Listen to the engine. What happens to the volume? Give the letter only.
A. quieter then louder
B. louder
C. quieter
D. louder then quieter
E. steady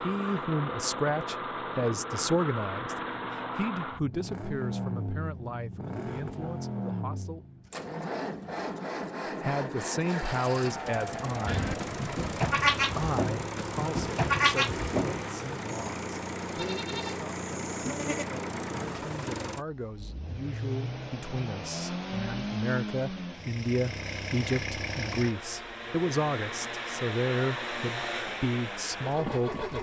E.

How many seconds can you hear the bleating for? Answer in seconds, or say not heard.
7 s.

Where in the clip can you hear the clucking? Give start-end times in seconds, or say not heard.
not heard.